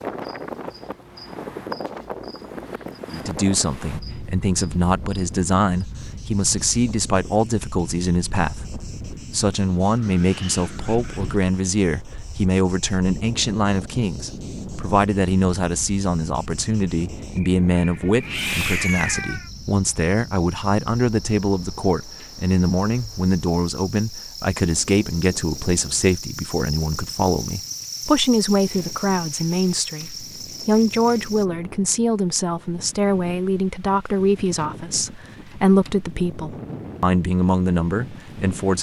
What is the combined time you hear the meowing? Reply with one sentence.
The meowing can be heard for 2 seconds in total.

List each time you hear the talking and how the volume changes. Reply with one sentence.
You can hear the talking from 3.1 to 38.7 s, at a steady volume.